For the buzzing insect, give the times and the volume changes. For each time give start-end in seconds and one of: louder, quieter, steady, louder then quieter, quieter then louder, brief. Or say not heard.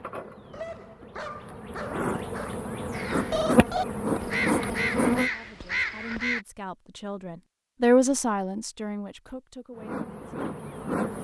0.0-5.3 louder
9.7-11.2 brief.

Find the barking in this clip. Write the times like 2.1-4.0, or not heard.
0.5-2.5.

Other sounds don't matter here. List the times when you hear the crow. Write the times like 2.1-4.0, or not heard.
2.9-6.5.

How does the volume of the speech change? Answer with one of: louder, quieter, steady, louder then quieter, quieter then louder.
louder then quieter.